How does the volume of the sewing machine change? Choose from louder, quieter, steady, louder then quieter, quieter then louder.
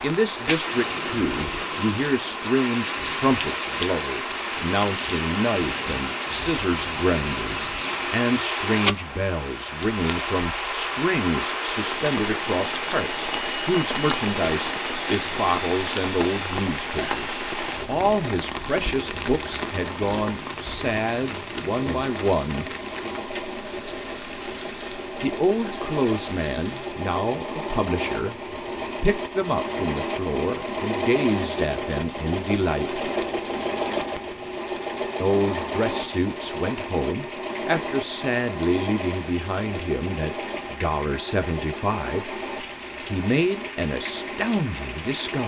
louder then quieter.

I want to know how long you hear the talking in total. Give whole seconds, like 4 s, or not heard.
39 s.